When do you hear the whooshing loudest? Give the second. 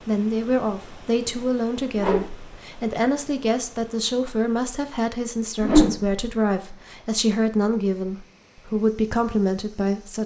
6 s.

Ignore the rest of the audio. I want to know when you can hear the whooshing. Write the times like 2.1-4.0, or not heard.
1.9-2.5, 5.6-6.2.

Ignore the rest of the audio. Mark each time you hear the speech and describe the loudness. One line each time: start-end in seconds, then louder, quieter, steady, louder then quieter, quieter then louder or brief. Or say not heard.
0.1-10.2 steady.